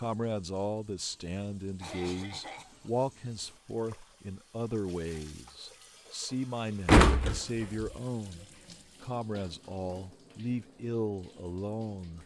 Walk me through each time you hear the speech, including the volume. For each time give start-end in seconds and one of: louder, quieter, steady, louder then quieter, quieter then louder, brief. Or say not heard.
0.0-12.2 steady.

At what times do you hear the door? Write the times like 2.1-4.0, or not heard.
6.8-7.9.